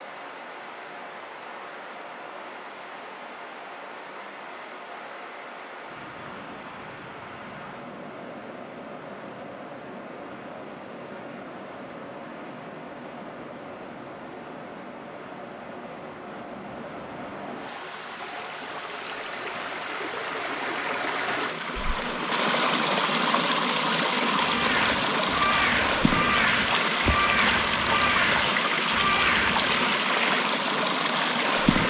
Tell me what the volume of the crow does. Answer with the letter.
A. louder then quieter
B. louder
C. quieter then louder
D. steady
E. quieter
D.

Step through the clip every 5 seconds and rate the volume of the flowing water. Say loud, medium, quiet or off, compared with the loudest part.
quiet, quiet, quiet, quiet, loud, loud, loud.